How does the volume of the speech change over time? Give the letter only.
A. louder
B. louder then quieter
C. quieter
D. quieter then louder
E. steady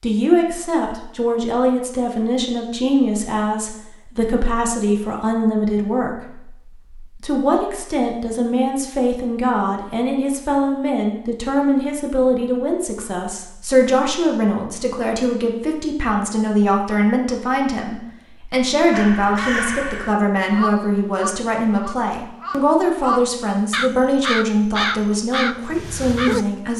E.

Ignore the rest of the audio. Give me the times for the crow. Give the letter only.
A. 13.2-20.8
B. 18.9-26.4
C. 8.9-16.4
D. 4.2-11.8
B.